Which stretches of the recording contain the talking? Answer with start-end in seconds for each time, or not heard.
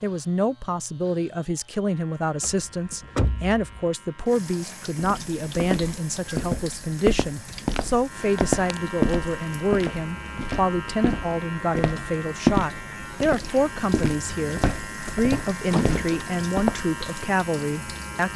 0.0-18.3.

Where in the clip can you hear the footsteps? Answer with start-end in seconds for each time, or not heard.
5.0-16.9.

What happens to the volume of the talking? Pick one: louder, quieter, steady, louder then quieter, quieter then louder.
steady.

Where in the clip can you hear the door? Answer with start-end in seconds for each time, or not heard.
2.4-3.9, 8.3-8.8, 15.1-16.2.